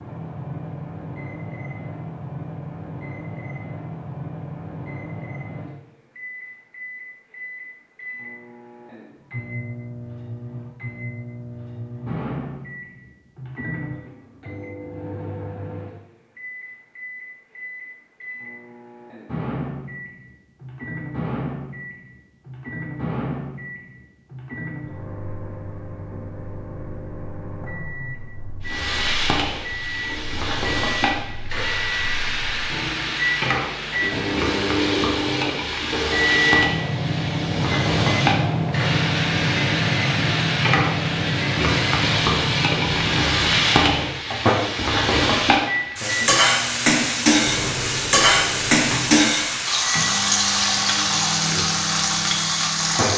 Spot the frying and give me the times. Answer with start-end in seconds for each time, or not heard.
28.6-53.1.